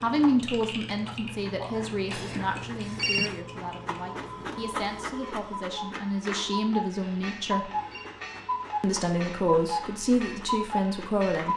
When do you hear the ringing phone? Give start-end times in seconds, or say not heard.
2.1-3.4, 7.0-8.1.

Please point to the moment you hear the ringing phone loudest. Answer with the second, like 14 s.
3 s.